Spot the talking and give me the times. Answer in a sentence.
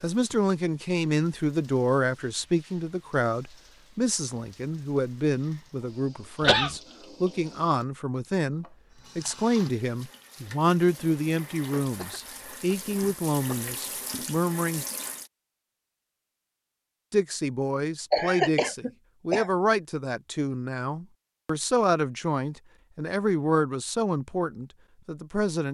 You can hear the talking from 0.0 to 14.8 s and from 17.1 to 25.7 s.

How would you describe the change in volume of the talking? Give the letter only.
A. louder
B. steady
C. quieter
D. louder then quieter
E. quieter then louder
B.